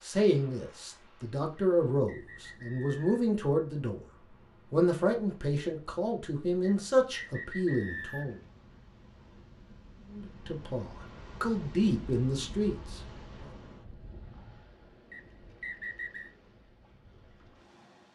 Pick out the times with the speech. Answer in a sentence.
You can hear the speech from 0.0 to 4.0 s, from 4.7 to 8.4 s and from 10.1 to 13.4 s.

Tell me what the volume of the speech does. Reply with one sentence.
The loudness of the speech stays about the same.